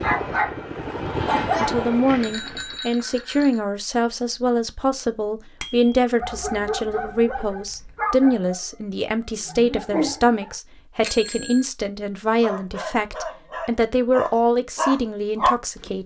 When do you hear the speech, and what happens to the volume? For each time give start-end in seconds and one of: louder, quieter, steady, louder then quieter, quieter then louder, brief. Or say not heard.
1.6-16.0 steady.